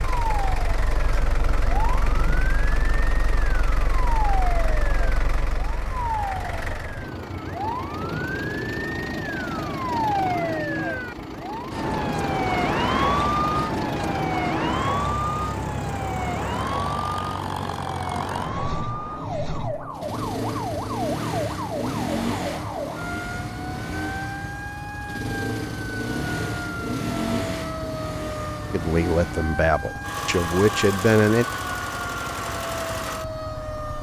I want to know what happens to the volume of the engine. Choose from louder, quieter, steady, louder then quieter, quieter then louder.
steady.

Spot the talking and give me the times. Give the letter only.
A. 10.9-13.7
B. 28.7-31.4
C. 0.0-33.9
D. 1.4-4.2
B.